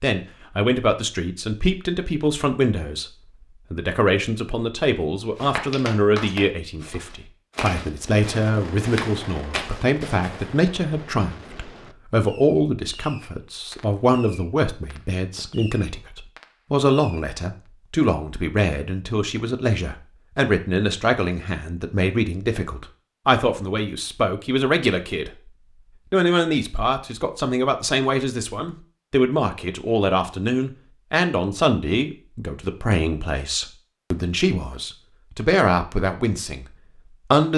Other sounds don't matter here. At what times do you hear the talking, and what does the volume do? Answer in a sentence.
You can hear the talking from 0.0 to 37.5 s, at a steady volume.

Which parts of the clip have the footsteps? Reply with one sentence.
The footsteps can be heard from 5.3 to 10.4 s.